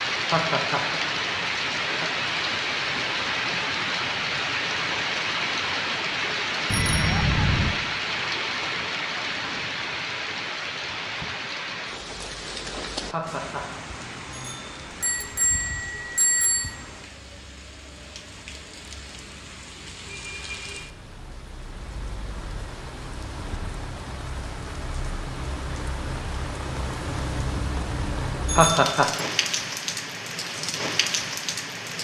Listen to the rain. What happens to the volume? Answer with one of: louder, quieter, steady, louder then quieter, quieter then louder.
quieter then louder.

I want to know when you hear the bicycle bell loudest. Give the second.
16 s.